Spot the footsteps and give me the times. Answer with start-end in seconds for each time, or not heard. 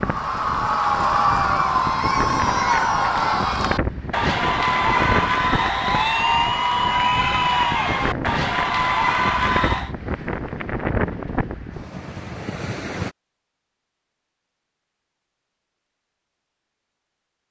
not heard.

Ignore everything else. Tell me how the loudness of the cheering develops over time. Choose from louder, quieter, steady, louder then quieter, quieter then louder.
steady.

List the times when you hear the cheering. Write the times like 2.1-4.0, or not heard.
0.0-9.9.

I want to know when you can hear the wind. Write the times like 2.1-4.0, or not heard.
0.0-13.2.